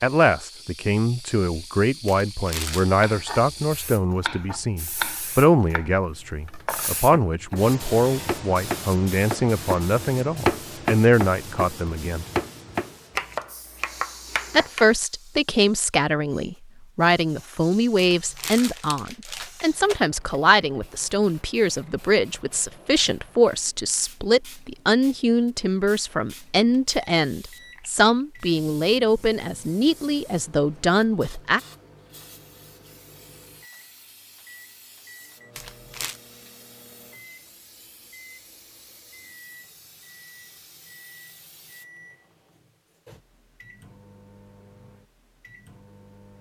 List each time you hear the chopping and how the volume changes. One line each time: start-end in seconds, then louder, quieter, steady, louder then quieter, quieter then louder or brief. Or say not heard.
3.0-14.8 quieter then louder.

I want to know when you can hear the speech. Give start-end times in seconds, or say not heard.
0.0-12.2, 14.5-31.6.